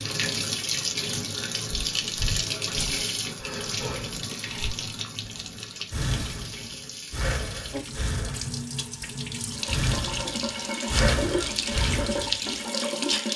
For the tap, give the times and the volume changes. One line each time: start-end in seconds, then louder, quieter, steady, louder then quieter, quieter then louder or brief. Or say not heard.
0.0-13.3 quieter then louder.